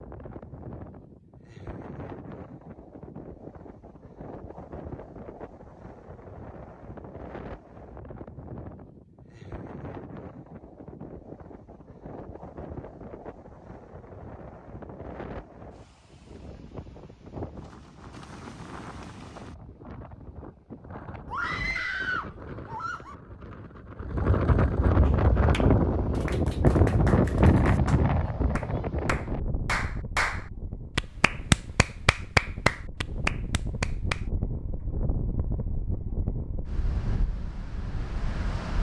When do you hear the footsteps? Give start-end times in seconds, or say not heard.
not heard.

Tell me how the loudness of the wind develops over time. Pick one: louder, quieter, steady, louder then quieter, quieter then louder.
louder then quieter.